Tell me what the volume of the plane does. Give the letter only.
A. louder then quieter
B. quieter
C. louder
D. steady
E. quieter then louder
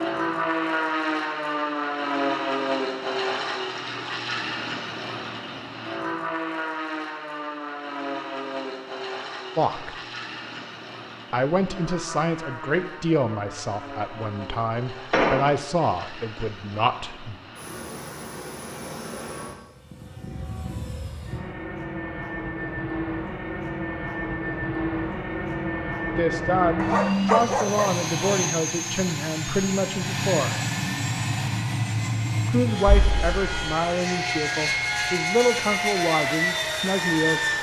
E.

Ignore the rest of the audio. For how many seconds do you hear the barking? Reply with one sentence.
The barking can be heard for 2 seconds in total.